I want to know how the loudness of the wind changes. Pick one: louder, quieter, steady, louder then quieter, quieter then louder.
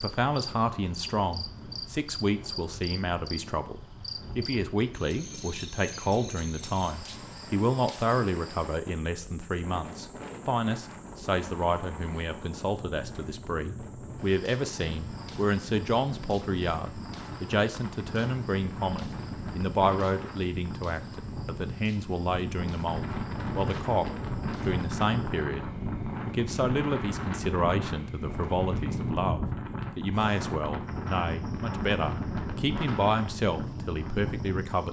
louder.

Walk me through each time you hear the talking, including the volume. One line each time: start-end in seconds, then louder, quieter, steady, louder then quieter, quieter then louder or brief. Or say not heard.
0.0-34.8 steady.